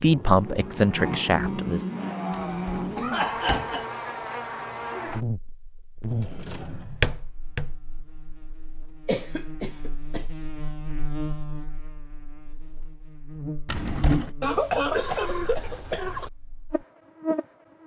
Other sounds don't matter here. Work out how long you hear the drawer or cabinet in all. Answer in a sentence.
You can hear the drawer or cabinet for 4 seconds altogether.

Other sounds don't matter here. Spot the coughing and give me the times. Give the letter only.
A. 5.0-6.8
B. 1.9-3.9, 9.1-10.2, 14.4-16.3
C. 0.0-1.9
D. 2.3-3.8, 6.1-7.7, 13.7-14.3
B.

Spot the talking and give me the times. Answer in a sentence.
The talking can be heard from 0.0 to 1.9 s.